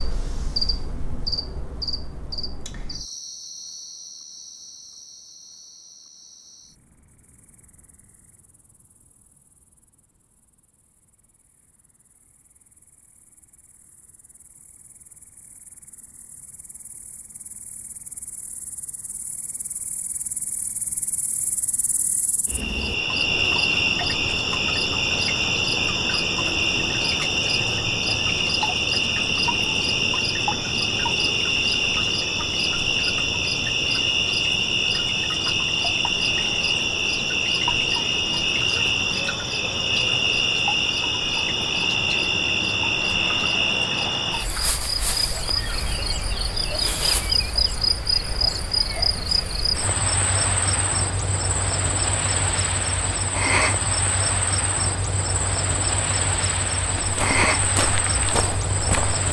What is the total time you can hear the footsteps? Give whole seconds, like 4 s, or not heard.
2 s.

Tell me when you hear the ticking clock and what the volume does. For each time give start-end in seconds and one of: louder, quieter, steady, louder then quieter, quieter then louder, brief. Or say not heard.
not heard.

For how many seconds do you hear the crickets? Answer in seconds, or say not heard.
59 s.